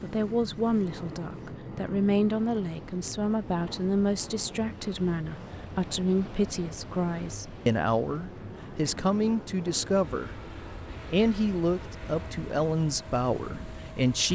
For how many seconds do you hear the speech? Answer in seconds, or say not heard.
14 s.